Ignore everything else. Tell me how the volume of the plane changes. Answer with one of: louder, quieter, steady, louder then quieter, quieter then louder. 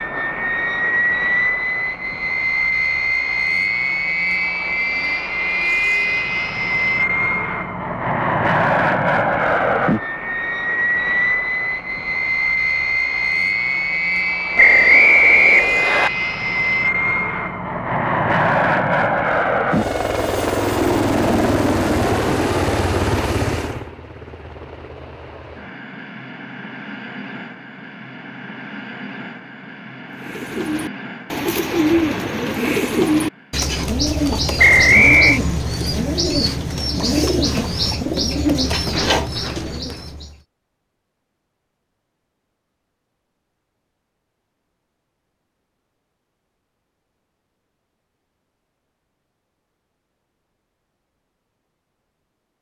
quieter.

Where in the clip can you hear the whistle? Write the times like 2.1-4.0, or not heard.
14.6-16.1, 34.5-35.4.